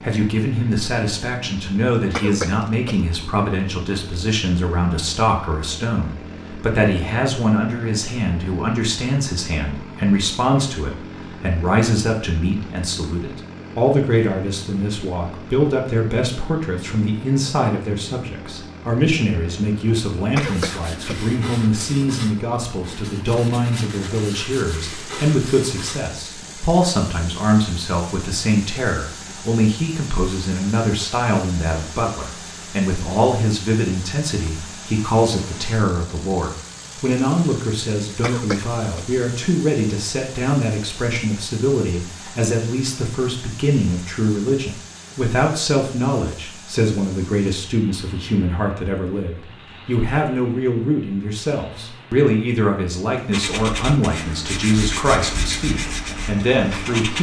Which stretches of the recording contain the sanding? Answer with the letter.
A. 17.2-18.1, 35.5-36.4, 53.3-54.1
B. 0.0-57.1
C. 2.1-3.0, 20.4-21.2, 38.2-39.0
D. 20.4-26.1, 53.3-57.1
D.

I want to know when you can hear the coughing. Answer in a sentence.
You can hear the coughing from 2.1 to 3.0 s, from 20.4 to 21.2 s and from 38.2 to 39.0 s.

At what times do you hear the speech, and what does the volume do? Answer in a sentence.
You can hear the speech from 0.0 to 57.1 s, at a steady volume.